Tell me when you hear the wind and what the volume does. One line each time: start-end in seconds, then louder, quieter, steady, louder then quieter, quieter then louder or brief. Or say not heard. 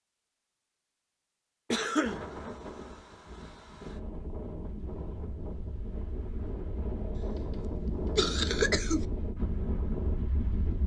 2.0-10.8 louder.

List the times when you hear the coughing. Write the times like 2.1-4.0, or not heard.
1.7-2.2, 7.2-9.1.